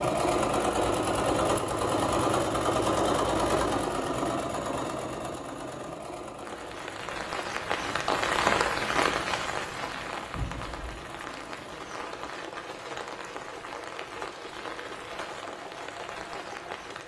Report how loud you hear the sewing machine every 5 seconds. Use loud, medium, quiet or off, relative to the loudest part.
loud, quiet, quiet, quiet.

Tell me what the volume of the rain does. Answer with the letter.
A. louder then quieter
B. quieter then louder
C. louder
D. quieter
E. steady
D.